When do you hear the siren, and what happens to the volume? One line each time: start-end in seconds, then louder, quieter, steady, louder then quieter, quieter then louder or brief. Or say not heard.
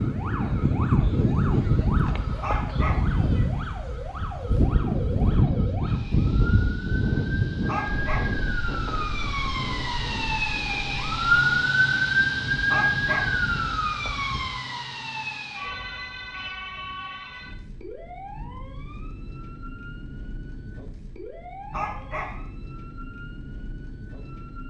0.0-24.6 louder then quieter.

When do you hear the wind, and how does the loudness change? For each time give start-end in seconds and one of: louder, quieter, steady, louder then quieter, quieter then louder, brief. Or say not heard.
0.0-14.6 quieter.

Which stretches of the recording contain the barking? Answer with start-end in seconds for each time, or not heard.
2.4-3.0, 7.7-8.3, 12.7-13.3, 21.7-22.4.